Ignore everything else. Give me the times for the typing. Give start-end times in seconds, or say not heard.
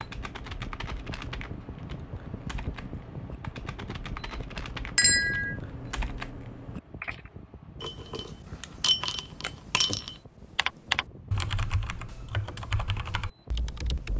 0.0-7.3, 10.6-14.1.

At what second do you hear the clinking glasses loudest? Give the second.
5 s.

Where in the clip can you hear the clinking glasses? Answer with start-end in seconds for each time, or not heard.
5.0-5.5, 7.8-10.2.